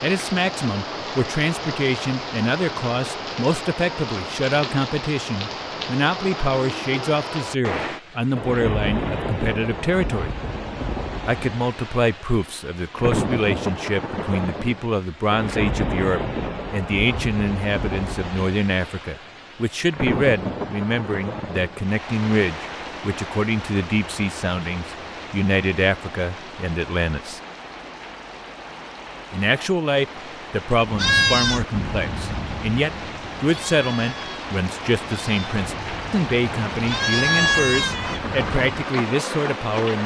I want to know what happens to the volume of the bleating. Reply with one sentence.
The volume of the bleating goes down, then up.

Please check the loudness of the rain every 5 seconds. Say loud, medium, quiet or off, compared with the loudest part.
loud, loud, loud, loud, loud, medium, medium, loud.